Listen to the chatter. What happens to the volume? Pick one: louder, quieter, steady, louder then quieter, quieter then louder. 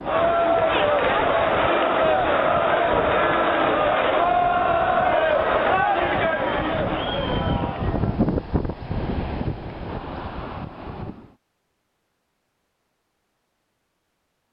quieter.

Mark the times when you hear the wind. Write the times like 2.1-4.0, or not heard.
0.0-11.3.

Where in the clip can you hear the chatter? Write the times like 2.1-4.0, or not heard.
0.0-8.2.